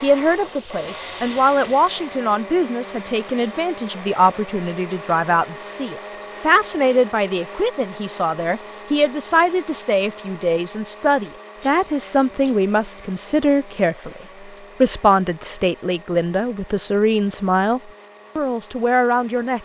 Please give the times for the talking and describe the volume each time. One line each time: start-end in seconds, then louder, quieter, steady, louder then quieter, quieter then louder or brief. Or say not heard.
0.0-19.6 steady.